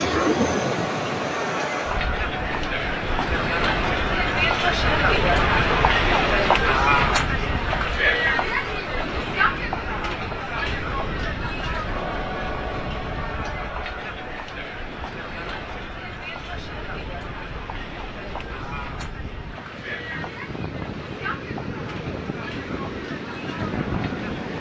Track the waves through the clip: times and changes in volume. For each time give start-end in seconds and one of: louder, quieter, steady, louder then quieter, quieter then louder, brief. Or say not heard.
0.0-24.5 quieter then louder.